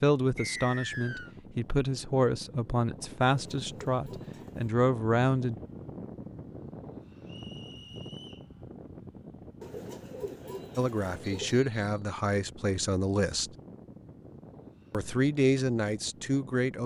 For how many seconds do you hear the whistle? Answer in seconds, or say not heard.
3 s.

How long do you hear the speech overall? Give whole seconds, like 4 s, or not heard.
10 s.